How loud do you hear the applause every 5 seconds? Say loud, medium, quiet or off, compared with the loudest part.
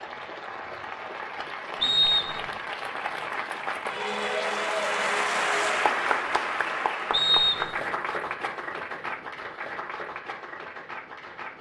loud, loud, medium.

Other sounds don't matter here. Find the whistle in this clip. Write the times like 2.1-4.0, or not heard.
1.8-2.5, 7.1-7.8.